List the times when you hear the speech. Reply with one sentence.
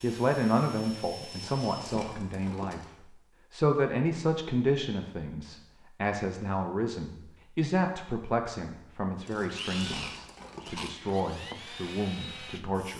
The speech can be heard from 0.0 to 12.9 s.